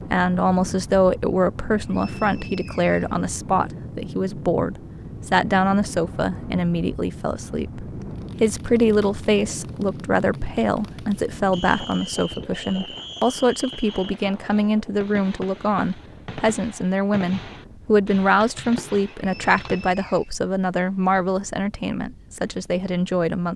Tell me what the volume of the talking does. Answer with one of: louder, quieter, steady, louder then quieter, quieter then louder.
steady.